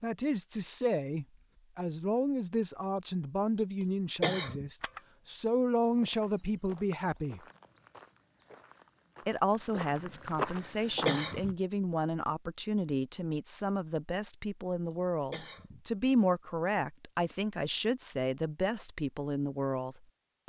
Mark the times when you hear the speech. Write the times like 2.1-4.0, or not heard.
0.0-7.4, 9.2-20.4.